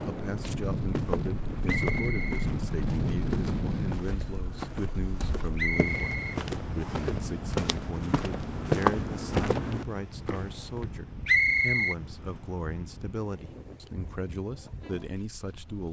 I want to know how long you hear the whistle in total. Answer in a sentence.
The whistle can be heard for 3 seconds in total.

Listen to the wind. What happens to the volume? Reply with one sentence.
The loudness of the wind goes down.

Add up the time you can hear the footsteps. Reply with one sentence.
The footsteps can be heard for 10 seconds in total.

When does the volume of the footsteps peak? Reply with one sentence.
The volume of the footsteps peaks at 9 seconds.